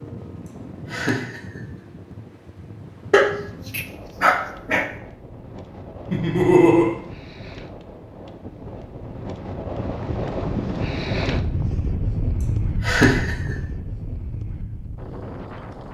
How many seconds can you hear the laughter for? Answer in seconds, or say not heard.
2 s.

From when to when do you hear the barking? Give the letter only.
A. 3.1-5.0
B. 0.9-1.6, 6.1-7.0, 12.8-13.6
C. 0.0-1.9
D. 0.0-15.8
A.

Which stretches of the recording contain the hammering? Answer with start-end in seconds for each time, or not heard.
not heard.